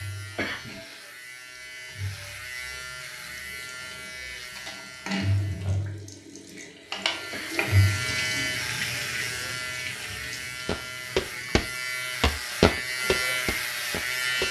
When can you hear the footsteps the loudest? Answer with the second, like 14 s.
13 s.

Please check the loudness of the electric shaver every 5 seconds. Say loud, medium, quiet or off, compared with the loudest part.
medium, loud, loud.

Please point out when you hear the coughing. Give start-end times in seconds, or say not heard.
0.3-0.8, 7.3-7.7.